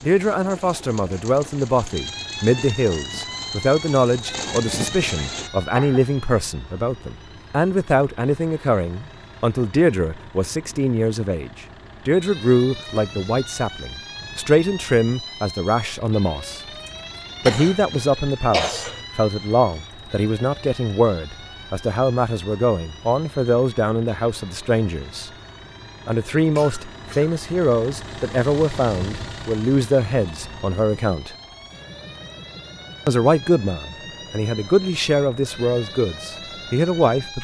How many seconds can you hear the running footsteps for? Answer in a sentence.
You can't hear the running footsteps here.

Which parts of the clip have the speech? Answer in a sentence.
The speech can be heard from 0.0 to 16.6 s, from 17.4 to 25.3 s, from 26.1 to 31.4 s and from 33.0 to 37.3 s.